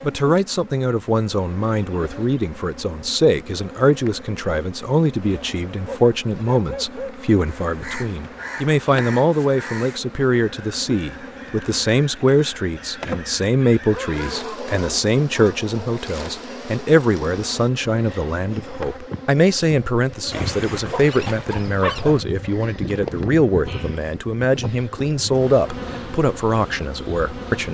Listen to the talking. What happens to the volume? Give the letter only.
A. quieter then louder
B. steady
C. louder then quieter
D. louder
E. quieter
B.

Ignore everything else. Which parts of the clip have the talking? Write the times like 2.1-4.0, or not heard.
0.0-27.6.